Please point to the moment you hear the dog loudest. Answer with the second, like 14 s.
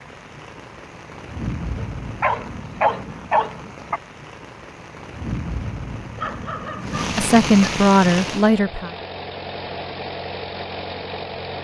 3 s.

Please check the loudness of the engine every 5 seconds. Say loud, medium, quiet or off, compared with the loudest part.
off, loud, loud.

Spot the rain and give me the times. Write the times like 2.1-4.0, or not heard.
0.0-8.5.